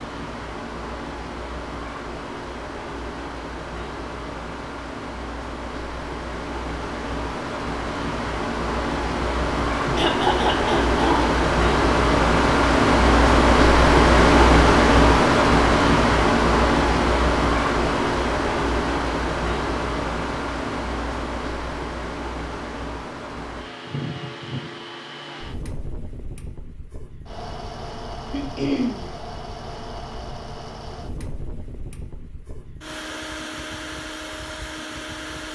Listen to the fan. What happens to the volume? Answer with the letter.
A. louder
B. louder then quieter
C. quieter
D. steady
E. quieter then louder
B.